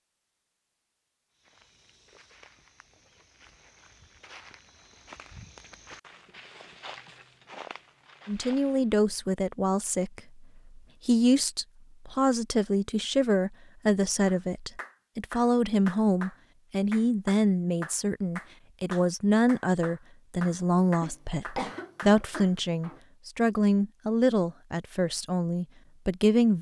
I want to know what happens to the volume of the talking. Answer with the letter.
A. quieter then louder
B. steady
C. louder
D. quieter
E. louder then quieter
B.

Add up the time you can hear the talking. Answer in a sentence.
The talking can be heard for 18 seconds in total.